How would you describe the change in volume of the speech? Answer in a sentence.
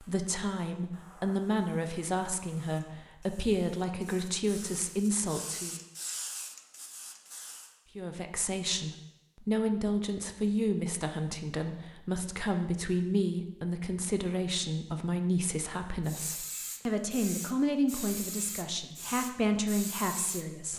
The loudness of the speech stays about the same.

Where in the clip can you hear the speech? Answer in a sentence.
You can hear the speech from 0.0 to 5.8 s and from 8.0 to 20.7 s.